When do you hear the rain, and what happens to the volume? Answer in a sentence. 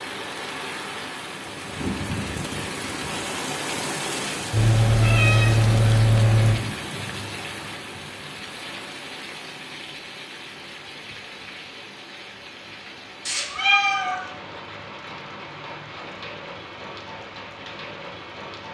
You can hear the rain from 0.0 to 18.7 s, getting quieter.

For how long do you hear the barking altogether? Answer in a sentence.
You can't hear the barking here.